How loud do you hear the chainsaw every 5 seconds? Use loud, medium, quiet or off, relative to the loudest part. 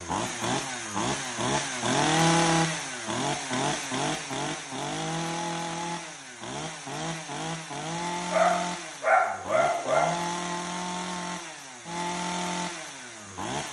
loud, medium, medium.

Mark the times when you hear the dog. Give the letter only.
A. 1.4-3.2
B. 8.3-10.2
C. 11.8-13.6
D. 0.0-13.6
B.